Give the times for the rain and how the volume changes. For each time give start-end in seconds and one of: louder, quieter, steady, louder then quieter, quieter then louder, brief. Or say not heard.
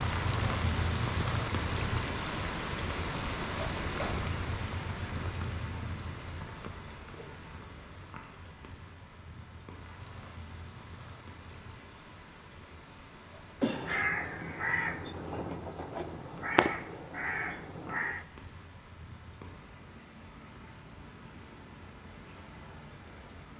0.0-23.5 quieter.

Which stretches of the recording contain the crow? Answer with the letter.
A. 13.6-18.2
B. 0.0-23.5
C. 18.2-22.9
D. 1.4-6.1
A.